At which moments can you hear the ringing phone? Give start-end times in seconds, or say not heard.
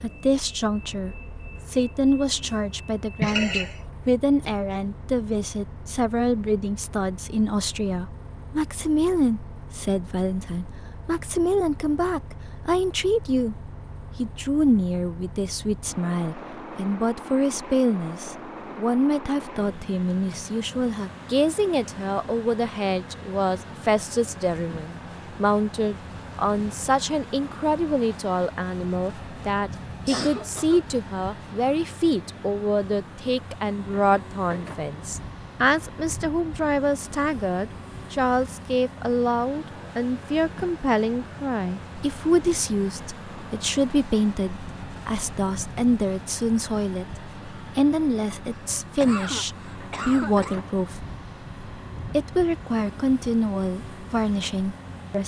not heard.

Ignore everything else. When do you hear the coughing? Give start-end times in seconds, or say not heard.
3.2-3.8, 30.1-30.9, 48.5-50.6.